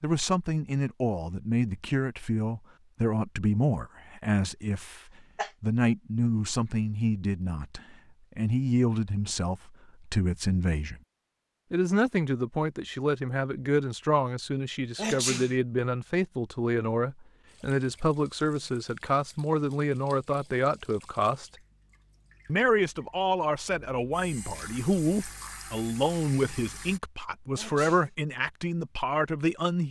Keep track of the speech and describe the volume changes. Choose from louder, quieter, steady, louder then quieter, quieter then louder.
steady.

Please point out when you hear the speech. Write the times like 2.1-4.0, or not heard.
0.0-5.0, 5.6-11.0, 11.7-21.5, 22.4-29.8.